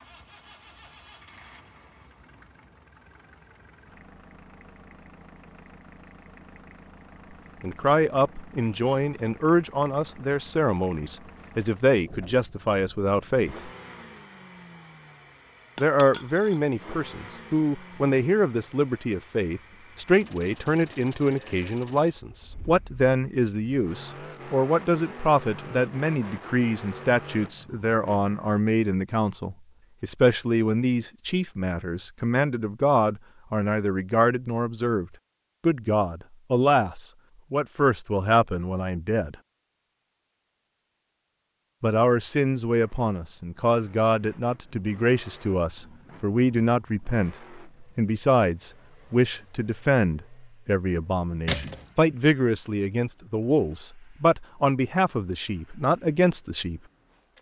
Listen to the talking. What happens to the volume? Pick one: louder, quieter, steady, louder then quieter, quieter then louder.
steady.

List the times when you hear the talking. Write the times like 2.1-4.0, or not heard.
7.6-13.7, 15.8-39.4, 41.8-56.8.